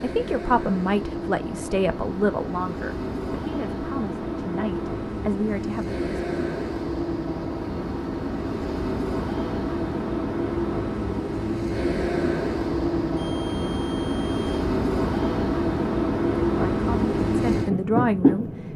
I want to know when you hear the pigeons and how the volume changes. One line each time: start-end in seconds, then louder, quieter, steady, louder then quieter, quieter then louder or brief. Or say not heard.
not heard.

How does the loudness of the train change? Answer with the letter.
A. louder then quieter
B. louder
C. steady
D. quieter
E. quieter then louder
B.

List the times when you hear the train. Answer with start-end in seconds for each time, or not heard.
0.0-18.7.